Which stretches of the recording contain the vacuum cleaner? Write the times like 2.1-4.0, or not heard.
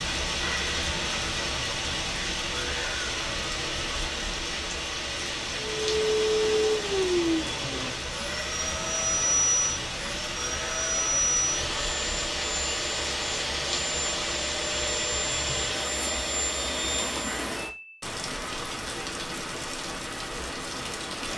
5.7-17.4.